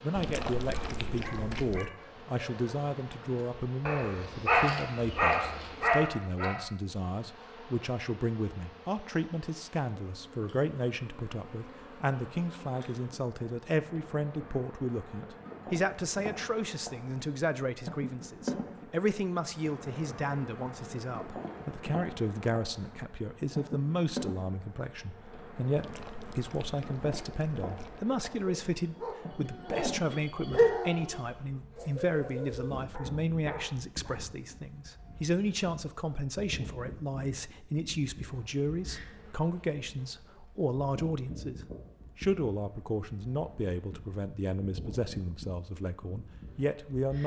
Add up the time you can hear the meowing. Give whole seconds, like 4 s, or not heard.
4 s.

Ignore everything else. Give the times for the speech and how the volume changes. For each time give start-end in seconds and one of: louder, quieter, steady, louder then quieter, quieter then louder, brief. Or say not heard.
0.0-47.2 steady.